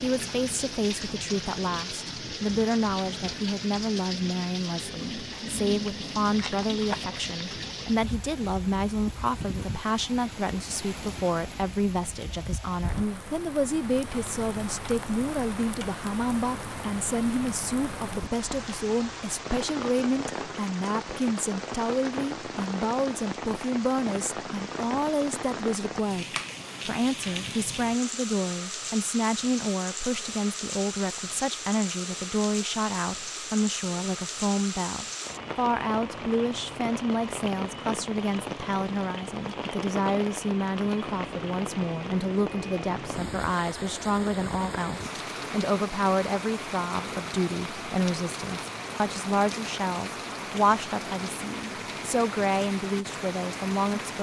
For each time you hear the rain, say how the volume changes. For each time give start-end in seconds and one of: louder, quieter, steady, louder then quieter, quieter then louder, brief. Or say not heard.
0.0-54.1 steady.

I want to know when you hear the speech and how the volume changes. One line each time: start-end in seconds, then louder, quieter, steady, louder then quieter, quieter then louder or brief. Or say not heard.
0.0-26.2 steady
26.9-54.1 steady.